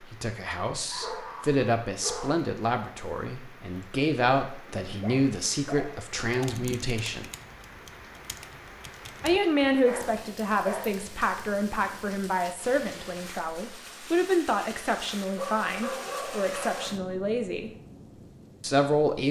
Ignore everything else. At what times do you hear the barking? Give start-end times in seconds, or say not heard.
0.8-2.5, 4.8-6.8, 9.8-10.9, 15.3-16.9.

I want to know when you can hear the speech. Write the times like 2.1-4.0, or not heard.
0.0-7.2, 9.2-17.7, 18.6-19.2.